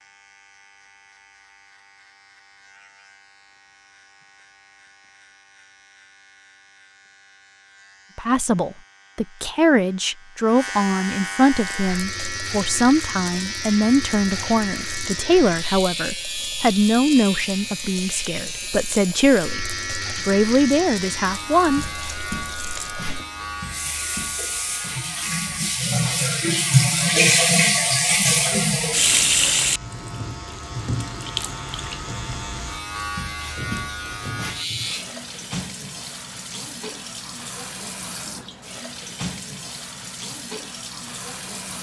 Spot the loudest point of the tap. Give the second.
27 s.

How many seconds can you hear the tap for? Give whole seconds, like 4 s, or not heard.
30 s.